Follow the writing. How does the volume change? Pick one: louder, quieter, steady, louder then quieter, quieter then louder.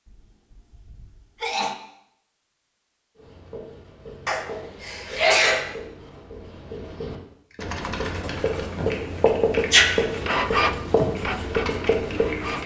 louder.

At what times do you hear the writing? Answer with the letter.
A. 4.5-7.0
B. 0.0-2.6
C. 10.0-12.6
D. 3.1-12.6
D.